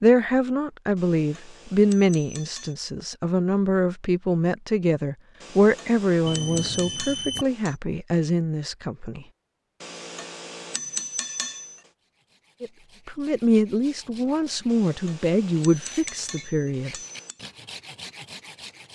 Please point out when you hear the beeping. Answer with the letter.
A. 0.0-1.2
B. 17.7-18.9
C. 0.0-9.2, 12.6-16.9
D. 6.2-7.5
D.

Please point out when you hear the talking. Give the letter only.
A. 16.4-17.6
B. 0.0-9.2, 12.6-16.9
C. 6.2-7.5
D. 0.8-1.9
B.